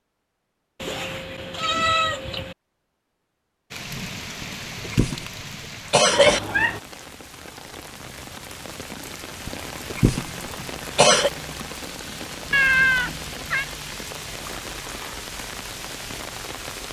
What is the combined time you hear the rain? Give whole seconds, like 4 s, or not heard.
13 s.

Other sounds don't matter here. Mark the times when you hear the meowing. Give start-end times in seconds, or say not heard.
0.8-2.5, 6.1-6.8, 12.5-13.7.